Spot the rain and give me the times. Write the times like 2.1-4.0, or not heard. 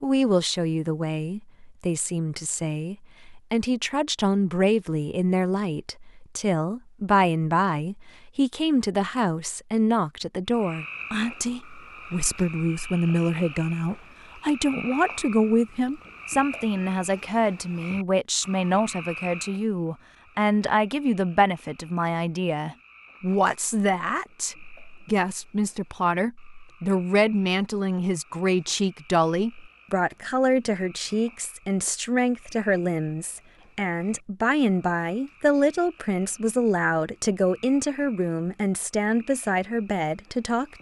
not heard.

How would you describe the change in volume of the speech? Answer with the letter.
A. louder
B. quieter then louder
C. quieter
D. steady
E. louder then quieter
D.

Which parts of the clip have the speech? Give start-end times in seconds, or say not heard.
0.0-40.7.